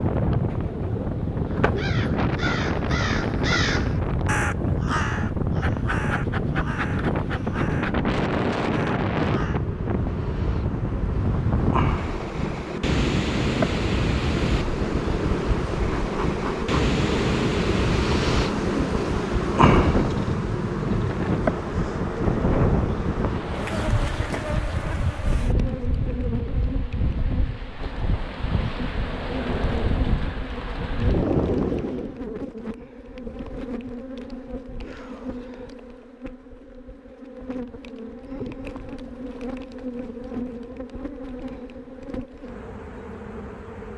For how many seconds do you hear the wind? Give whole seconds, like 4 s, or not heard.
32 s.